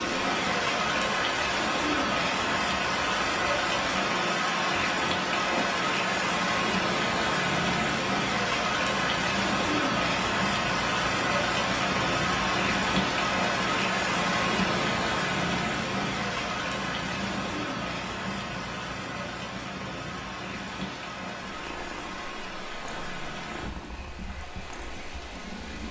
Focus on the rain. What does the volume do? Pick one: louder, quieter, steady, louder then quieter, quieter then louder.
quieter.